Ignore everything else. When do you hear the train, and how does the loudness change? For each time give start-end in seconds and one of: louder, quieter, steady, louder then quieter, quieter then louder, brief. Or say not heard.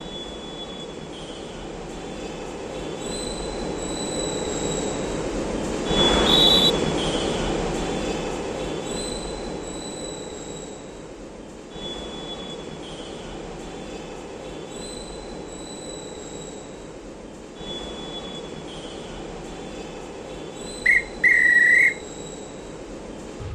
0.0-23.5 louder then quieter.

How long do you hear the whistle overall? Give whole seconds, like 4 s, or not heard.
2 s.